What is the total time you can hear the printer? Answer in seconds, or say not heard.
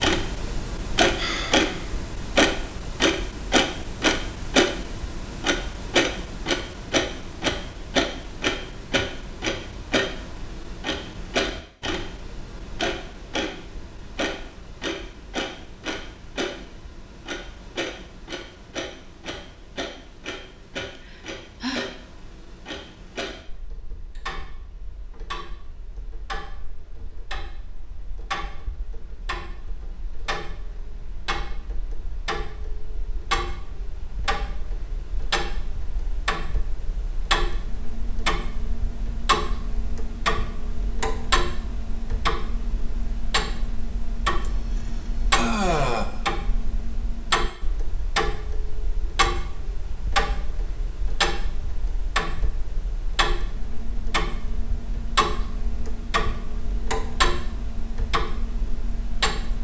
not heard.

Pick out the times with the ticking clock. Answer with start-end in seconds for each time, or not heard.
0.0-59.5.